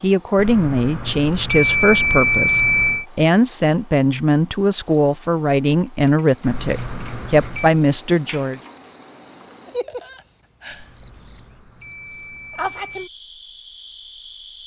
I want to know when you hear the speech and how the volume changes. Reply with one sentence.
The speech can be heard from 0.0 to 8.6 s, at a steady volume.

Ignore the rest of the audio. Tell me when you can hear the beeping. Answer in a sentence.
The beeping can be heard from 0.3 to 3.0 s, from 6.5 to 7.8 s and from 10.7 to 13.1 s.